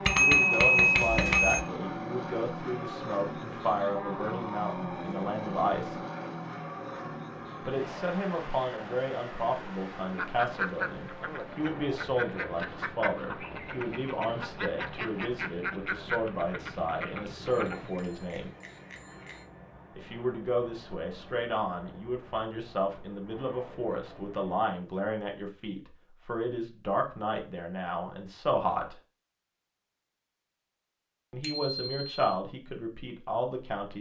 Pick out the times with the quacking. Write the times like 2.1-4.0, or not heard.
10.2-17.9.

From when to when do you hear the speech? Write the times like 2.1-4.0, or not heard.
0.1-6.0, 7.7-18.5, 19.9-28.9, 31.3-33.9.